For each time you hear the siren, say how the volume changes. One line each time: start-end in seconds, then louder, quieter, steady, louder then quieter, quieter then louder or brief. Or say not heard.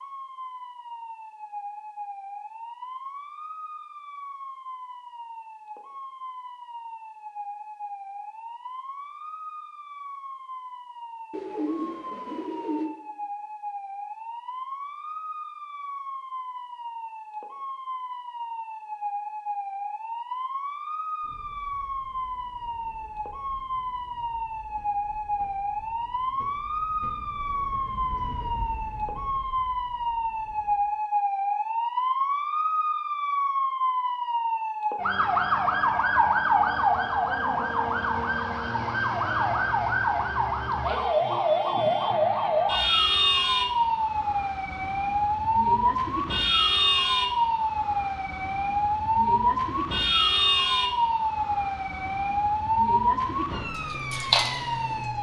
0.0-55.1 louder.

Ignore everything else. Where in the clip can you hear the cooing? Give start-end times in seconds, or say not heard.
11.3-12.9.